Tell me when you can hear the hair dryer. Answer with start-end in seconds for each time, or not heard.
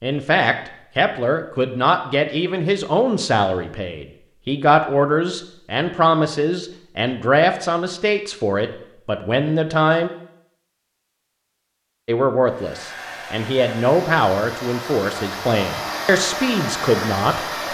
12.4-17.6.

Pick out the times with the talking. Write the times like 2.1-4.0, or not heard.
0.0-10.1, 12.1-17.4.